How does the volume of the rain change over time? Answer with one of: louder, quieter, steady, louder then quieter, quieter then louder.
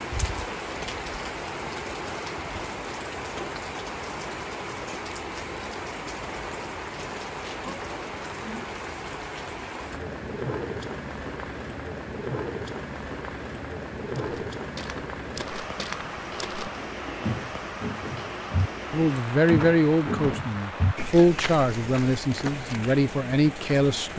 steady.